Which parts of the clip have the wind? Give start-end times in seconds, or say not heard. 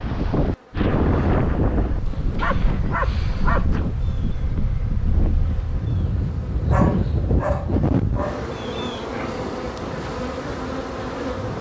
0.0-11.5.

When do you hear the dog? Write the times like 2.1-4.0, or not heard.
2.4-3.7, 6.7-8.4.